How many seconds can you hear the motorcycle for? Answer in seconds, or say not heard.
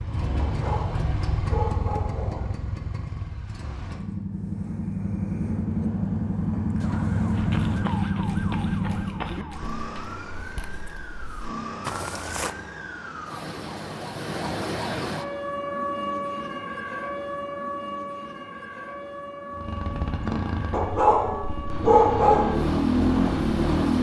14 s.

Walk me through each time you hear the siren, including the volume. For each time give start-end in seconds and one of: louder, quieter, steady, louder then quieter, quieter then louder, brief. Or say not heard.
6.8-23.9 louder then quieter.